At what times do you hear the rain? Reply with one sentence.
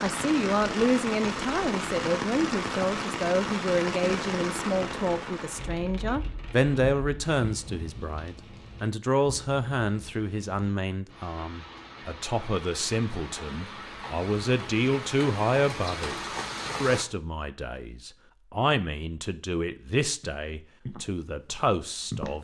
You can hear the rain from 0.0 to 17.1 s.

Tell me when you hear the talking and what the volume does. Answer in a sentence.
You can hear the talking from 0.0 to 22.3 s, at a steady volume.